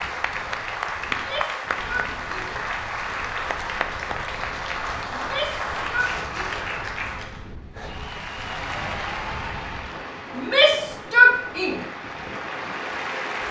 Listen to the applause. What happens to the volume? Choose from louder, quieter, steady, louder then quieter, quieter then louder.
quieter.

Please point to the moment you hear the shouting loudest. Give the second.
11 s.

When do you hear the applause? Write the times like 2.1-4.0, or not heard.
0.0-13.4.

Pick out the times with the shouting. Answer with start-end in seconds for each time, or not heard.
1.1-2.6, 5.1-6.5, 10.3-11.8.